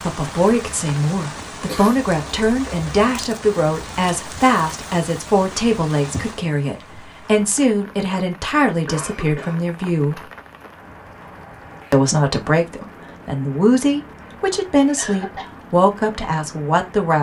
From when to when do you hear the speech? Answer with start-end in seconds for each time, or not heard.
0.0-10.2, 11.9-17.1.